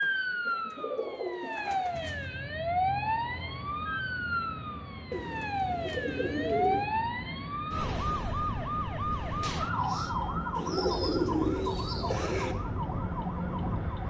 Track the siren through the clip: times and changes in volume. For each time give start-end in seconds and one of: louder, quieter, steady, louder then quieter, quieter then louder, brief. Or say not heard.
0.0-14.0 quieter.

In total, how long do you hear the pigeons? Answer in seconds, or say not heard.
6 s.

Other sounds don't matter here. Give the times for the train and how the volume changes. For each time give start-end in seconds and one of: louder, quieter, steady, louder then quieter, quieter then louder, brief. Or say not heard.
1.9-14.0 louder.